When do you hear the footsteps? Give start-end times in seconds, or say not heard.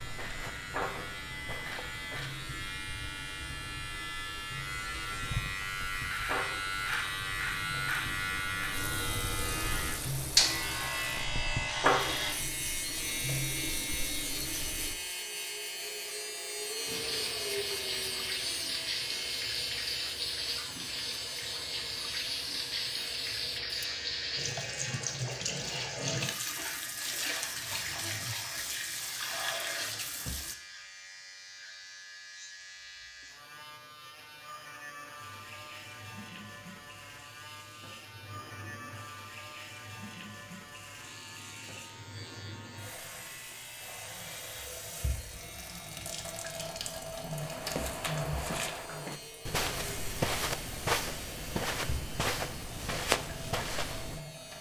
0.0-2.2, 47.4-54.2.